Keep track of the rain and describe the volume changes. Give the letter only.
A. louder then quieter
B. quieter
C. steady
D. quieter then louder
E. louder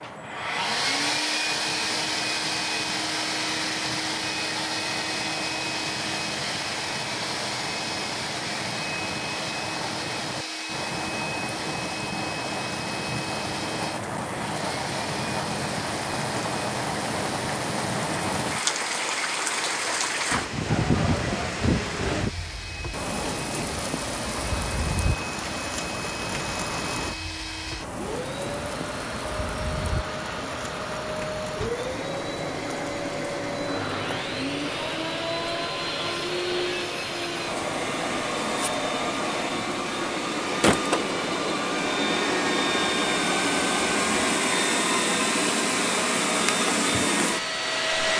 A.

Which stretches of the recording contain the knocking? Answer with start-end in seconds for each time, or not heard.
not heard.